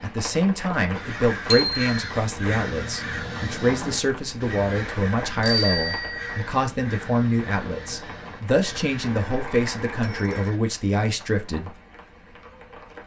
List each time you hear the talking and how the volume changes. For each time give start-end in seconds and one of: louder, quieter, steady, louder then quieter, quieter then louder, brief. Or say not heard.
0.0-11.7 steady.